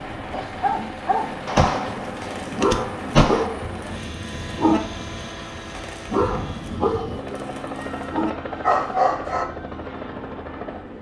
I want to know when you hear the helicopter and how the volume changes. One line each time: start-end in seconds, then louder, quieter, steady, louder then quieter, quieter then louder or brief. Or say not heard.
0.0-10.9 steady.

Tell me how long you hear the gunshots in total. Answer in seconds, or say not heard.
2 s.